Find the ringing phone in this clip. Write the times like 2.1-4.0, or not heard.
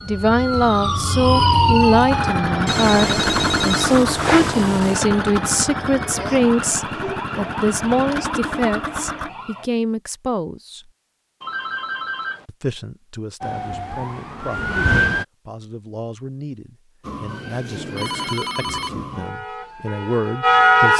2.6-5.0, 11.4-12.4, 17.9-18.9.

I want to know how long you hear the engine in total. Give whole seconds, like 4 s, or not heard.
7 s.